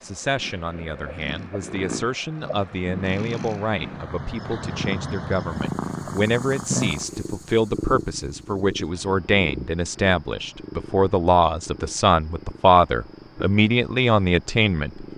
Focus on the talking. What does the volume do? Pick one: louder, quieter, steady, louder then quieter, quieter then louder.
louder.